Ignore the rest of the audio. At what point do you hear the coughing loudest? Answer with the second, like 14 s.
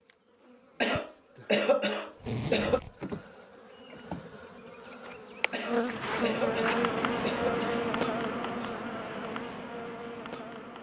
2 s.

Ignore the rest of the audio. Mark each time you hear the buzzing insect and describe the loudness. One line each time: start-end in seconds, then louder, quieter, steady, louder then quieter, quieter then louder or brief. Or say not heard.
0.0-10.7 louder then quieter.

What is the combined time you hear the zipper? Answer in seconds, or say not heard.
2 s.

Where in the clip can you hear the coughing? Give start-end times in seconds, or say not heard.
0.8-2.8, 5.5-7.9.